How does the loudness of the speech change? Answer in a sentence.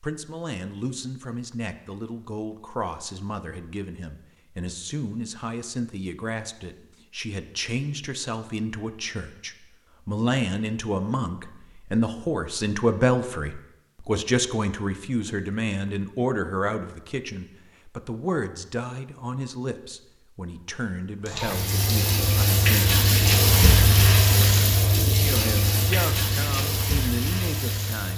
The loudness of the speech goes up, then down.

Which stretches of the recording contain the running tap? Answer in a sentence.
The running tap can be heard from 21.2 to 28.1 s.